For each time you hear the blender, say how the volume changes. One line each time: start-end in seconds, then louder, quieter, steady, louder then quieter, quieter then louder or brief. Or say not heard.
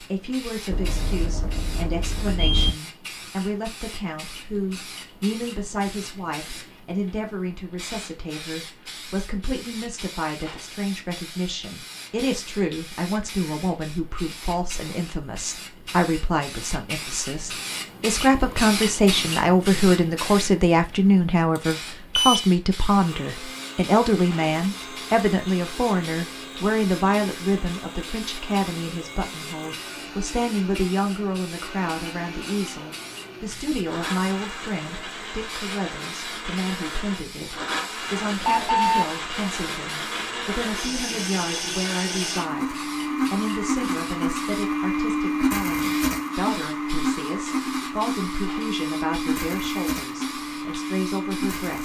22.9-51.7 louder.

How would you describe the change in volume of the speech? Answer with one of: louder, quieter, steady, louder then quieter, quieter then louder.
louder then quieter.